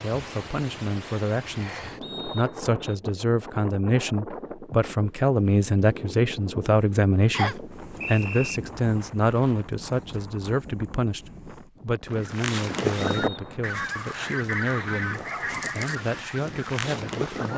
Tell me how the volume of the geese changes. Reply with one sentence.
The volume of the geese goes down.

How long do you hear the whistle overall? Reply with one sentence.
You can hear the whistle for 3 seconds altogether.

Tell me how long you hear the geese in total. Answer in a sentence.
The geese can be heard for 5 seconds in total.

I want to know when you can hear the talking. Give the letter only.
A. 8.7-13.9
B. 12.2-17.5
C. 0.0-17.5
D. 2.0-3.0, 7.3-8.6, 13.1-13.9
C.